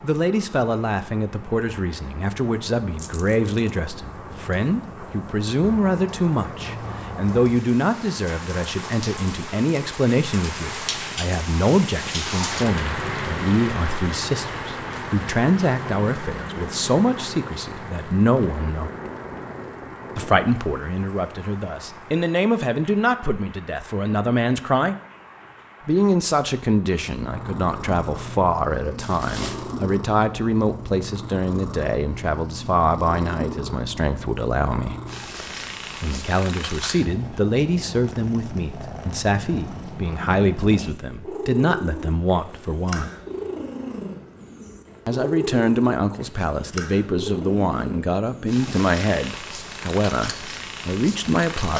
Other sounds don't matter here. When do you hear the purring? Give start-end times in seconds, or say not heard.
27.0-51.7.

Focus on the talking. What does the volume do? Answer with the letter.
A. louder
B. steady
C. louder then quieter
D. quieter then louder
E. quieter
B.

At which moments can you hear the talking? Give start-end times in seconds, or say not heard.
0.0-18.9, 20.1-24.9, 25.9-35.0, 36.0-43.1, 45.0-51.7.